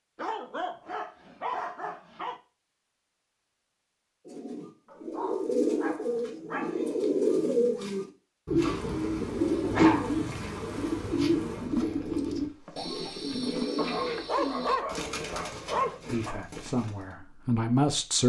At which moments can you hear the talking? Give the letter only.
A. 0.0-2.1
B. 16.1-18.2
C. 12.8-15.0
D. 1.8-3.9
B.